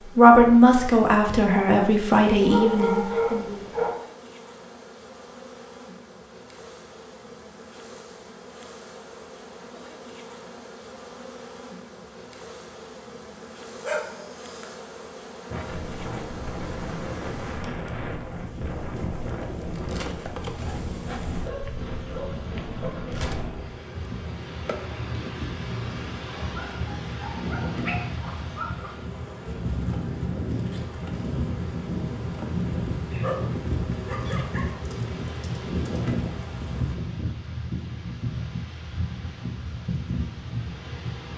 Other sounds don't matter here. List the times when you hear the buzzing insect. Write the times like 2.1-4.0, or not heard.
0.0-37.0.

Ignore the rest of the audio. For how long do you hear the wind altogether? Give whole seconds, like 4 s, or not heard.
26 s.